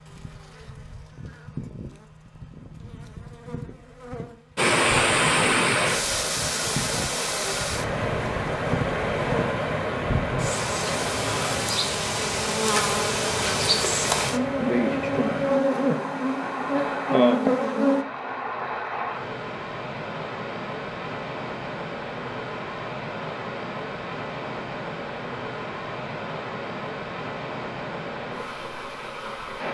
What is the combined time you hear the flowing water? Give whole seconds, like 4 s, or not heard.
25 s.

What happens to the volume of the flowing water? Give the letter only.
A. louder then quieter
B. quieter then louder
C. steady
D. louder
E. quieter
E.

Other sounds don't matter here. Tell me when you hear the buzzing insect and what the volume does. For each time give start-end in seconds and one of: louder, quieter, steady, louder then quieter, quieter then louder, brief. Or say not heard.
0.0-18.1 louder.